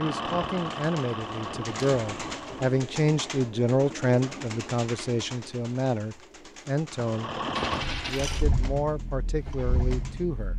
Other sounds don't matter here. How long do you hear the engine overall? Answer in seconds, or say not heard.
6 s.